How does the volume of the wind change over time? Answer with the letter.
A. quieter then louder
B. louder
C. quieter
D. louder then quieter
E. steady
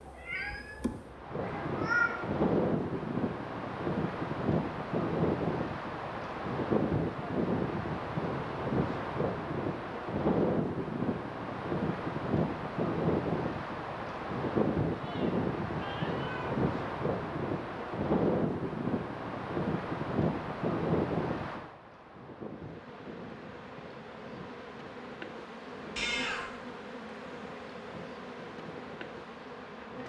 C.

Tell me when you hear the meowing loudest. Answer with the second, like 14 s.
2 s.